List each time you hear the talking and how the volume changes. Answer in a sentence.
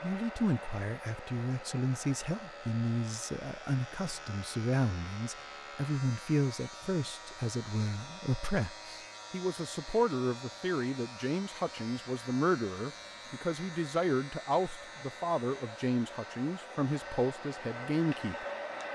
The talking can be heard from 0.0 to 18.4 s, at a steady volume.